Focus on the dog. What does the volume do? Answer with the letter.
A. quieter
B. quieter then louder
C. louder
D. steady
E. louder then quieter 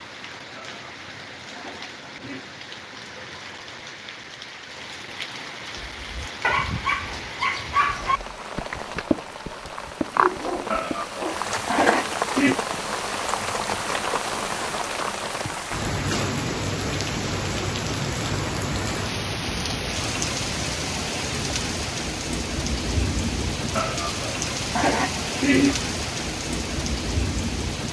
A.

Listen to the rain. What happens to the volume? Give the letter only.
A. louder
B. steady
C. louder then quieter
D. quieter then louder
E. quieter
A.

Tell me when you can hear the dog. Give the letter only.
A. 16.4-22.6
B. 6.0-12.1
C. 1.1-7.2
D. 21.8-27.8
B.